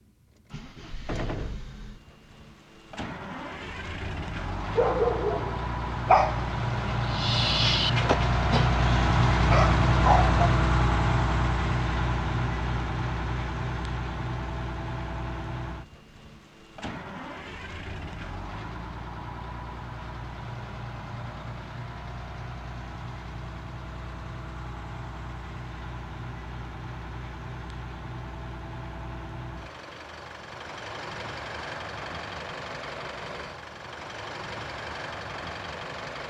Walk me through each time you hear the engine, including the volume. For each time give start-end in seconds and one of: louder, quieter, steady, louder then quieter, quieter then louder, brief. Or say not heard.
0.0-36.2 louder then quieter.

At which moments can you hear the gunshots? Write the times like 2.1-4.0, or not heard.
1.1-1.6.